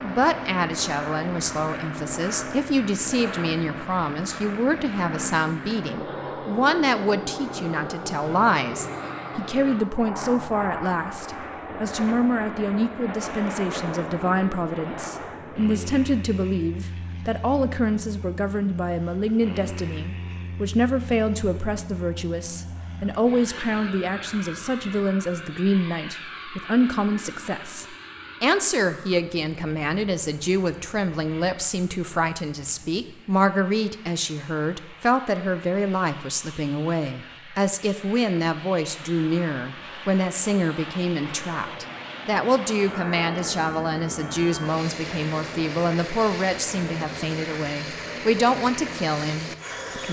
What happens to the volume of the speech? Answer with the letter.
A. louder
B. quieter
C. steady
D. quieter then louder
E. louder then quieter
C.